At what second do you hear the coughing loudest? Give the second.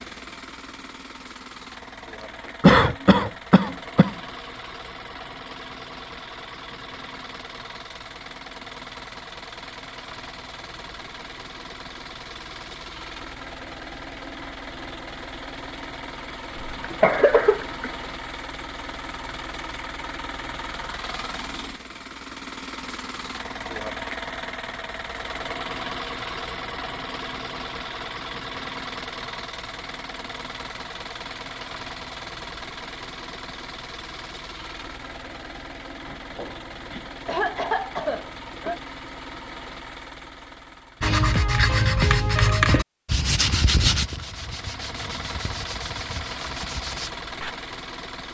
3 s.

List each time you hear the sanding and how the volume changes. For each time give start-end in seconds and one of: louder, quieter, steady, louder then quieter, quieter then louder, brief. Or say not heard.
41.0-47.5 quieter.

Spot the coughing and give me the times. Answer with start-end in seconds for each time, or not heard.
2.6-4.1, 16.6-17.9, 36.0-38.8.